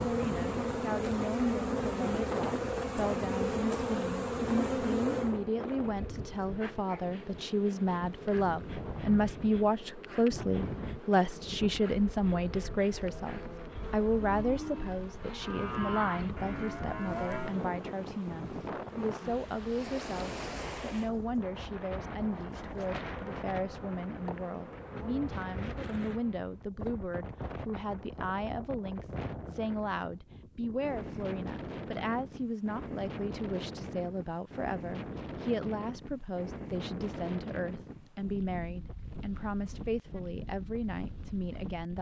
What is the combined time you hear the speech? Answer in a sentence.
You can hear the speech for 42 seconds altogether.